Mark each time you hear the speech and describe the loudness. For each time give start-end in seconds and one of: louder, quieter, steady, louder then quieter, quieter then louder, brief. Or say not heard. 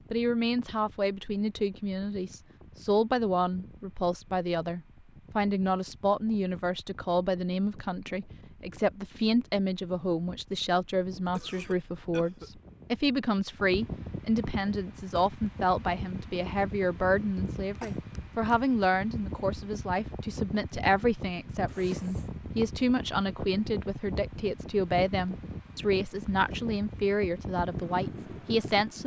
0.1-29.0 steady.